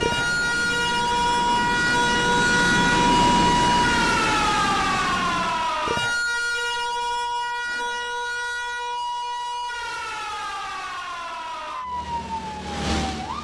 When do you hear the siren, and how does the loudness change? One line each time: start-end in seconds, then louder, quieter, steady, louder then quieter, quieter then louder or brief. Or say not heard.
0.0-13.3 quieter.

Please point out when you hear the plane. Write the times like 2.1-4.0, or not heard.
0.0-5.8, 11.8-13.3.